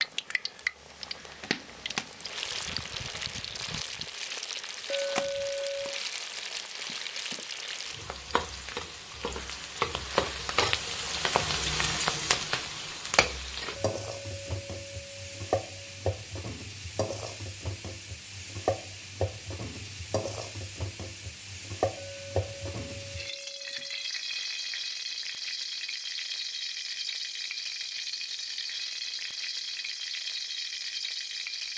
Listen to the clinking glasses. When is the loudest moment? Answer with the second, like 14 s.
5 s.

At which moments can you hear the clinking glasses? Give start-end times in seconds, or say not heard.
4.8-6.0, 13.8-15.9, 21.9-24.1.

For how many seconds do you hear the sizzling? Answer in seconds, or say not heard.
32 s.